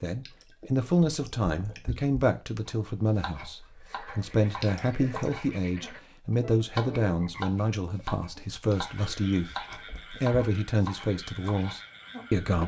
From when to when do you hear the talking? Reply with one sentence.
You can hear the talking from 0.0 to 12.6 s.